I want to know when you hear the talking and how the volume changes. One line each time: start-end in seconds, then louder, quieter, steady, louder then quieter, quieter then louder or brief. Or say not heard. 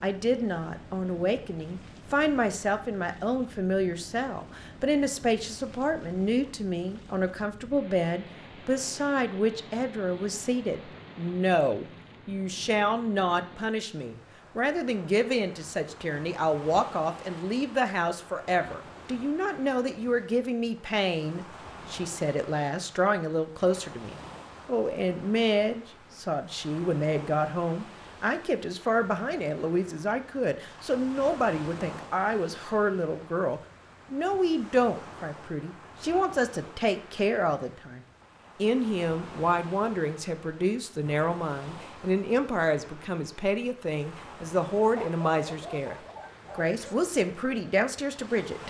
0.0-48.6 steady.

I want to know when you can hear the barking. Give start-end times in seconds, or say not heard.
45.0-47.0.